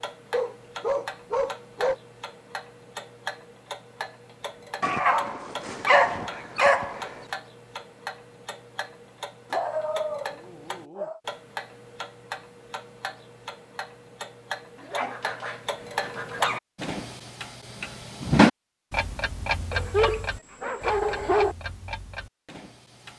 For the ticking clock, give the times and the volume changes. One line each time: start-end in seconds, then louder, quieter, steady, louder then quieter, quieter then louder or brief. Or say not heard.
0.0-23.1 louder.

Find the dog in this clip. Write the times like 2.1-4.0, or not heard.
0.3-1.9, 4.8-7.0, 9.5-11.2, 14.8-16.6, 19.7-21.6.